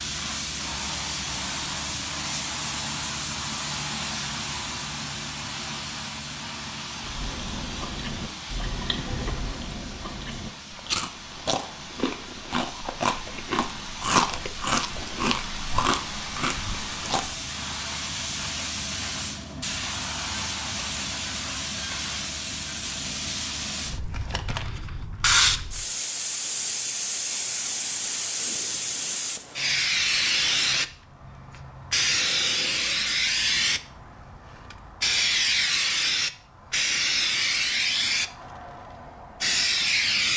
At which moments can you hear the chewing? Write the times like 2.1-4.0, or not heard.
7.0-17.4.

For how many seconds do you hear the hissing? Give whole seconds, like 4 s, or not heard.
40 s.